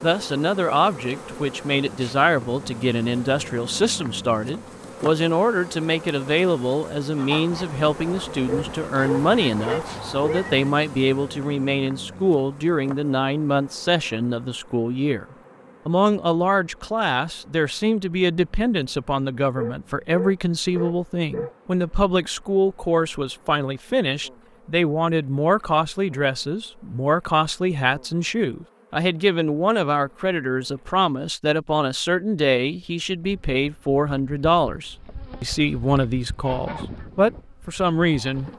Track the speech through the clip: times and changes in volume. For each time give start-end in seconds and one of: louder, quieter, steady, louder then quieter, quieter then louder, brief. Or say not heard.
0.0-15.2 steady
15.8-38.5 steady.